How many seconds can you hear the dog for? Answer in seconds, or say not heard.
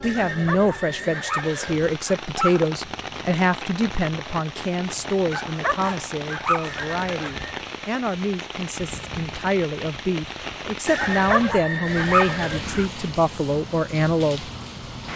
6 s.